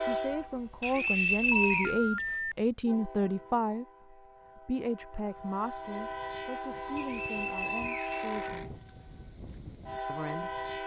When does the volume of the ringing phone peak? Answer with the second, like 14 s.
2 s.